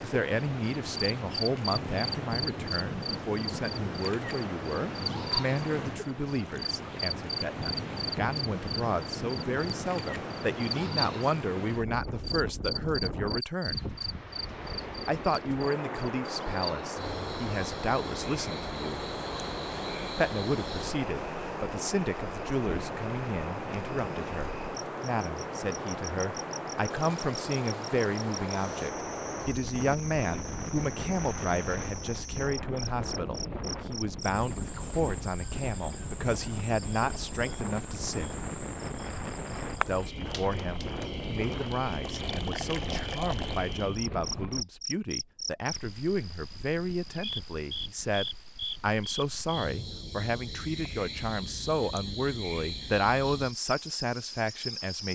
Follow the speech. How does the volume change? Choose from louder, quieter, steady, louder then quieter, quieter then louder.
steady.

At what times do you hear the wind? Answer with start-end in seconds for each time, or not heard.
0.0-44.6.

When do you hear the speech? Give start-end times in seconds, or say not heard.
0.0-13.8, 15.1-19.1, 20.1-38.4, 39.9-55.0.